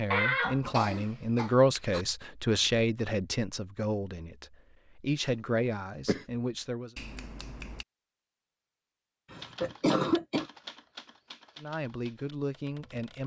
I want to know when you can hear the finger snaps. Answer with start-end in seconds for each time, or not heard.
7.0-7.8.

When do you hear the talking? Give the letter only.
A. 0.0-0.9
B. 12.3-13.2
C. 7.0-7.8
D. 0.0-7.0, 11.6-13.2
D.